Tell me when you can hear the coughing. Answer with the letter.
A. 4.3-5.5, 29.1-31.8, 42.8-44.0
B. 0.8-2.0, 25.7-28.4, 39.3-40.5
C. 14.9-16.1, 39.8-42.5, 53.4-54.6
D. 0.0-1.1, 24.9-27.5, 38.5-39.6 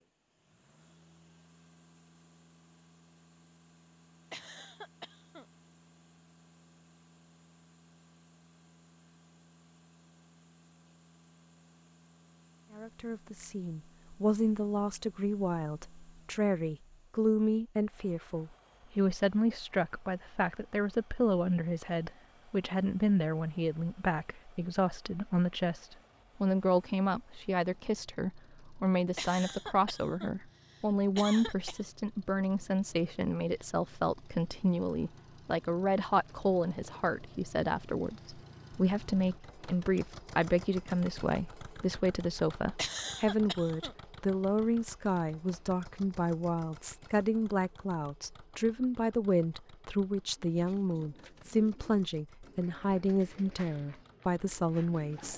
A.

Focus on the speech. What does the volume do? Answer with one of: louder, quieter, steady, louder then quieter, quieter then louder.
steady.